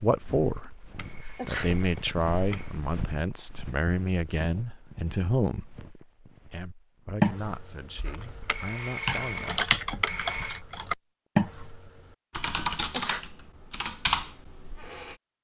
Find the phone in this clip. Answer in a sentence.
You can hear the phone from 0.5 to 2.8 s and from 8.0 to 10.6 s.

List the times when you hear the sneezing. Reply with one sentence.
You can hear the sneezing from 1.2 to 1.7 s and from 12.8 to 13.2 s.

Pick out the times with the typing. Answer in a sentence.
You can hear the typing from 7.2 to 15.2 s.